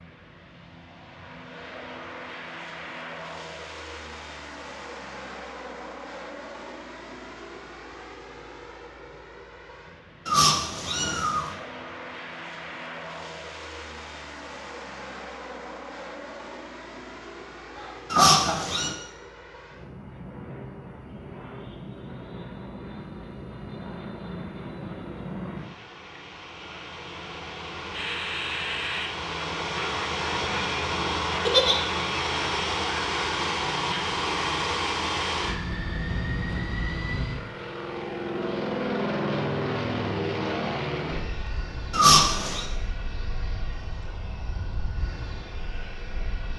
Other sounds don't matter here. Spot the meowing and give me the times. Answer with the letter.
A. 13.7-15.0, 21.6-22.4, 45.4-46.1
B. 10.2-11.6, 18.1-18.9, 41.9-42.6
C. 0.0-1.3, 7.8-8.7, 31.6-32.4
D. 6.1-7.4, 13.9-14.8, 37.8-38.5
B.